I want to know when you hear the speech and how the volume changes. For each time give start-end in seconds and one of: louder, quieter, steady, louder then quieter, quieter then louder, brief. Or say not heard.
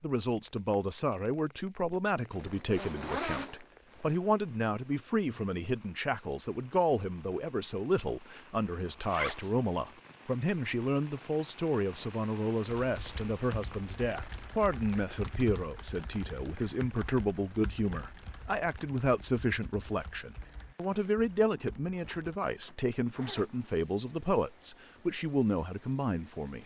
0.0-26.6 steady.